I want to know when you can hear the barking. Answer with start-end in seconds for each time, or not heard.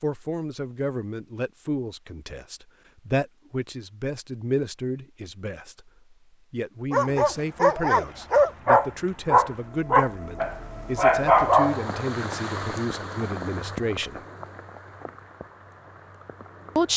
6.9-11.9.